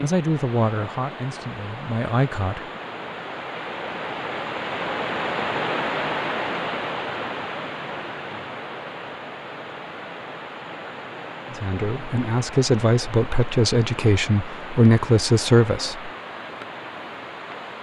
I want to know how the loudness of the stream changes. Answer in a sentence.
The volume of the stream goes up, then down.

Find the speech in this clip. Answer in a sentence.
The speech can be heard from 0.0 to 2.6 s and from 11.5 to 16.1 s.